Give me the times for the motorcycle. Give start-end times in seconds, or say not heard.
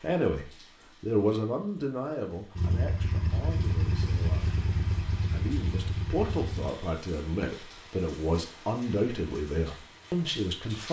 2.5-6.7.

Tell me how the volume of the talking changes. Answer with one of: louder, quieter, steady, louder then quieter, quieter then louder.
quieter then louder.